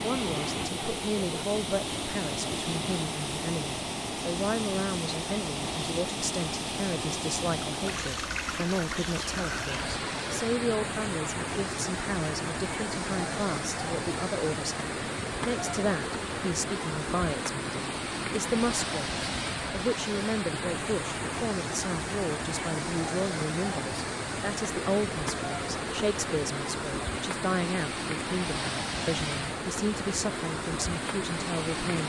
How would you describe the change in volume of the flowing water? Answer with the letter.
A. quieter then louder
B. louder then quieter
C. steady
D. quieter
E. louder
C.